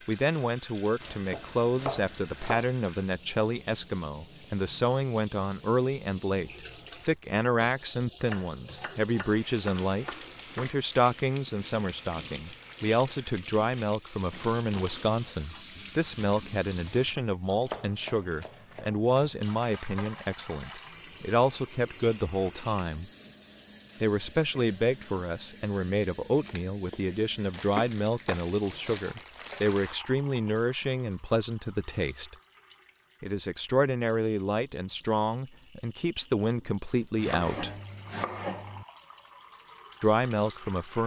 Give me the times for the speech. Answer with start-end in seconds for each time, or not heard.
0.1-23.1, 24.0-32.4, 33.2-37.7, 40.0-41.0.